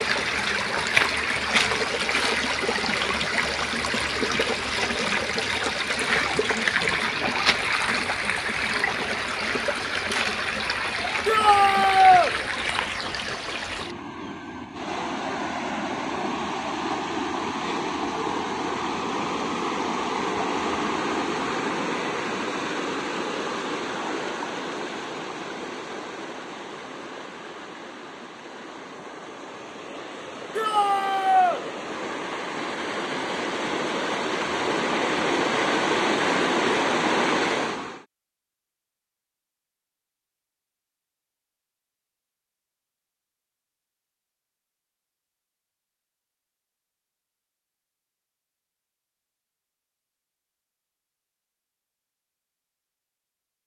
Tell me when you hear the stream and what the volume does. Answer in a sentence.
You can hear the stream from 0.0 to 38.0 s, getting quieter then louder.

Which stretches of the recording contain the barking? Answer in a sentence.
You can't hear the barking here.